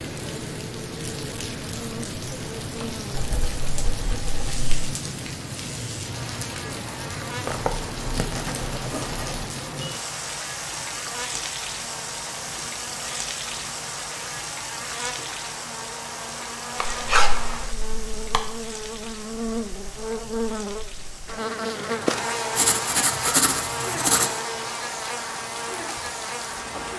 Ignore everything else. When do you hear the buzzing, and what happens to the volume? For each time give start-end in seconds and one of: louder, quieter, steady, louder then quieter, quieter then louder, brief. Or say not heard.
0.2-26.9 louder.